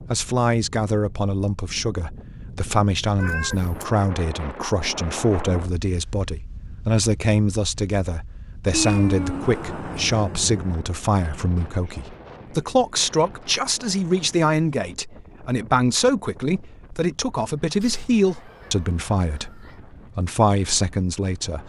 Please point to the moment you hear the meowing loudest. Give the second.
9 s.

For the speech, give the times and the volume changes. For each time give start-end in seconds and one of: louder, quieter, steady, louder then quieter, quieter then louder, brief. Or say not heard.
0.1-21.6 steady.